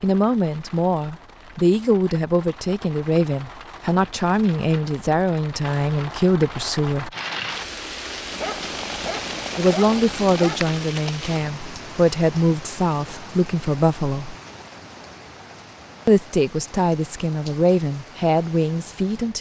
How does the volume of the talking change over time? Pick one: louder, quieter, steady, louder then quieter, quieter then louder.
steady.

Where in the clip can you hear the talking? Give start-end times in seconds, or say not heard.
0.0-7.1, 9.6-14.3, 16.1-19.3.